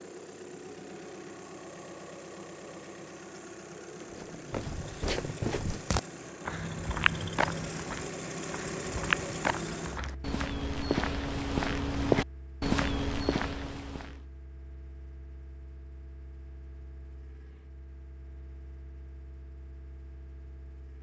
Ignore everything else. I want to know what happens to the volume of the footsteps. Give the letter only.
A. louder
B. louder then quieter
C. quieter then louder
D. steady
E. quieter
A.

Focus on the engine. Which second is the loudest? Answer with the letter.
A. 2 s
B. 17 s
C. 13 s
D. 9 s
D.